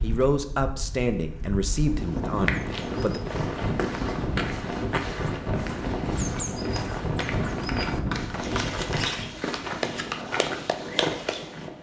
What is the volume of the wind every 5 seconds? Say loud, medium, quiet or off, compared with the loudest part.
loud, loud, medium.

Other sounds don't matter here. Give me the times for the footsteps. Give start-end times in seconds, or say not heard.
2.4-11.7.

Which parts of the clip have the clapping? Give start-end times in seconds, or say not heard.
6.8-11.3.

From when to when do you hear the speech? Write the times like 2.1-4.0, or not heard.
0.0-3.2.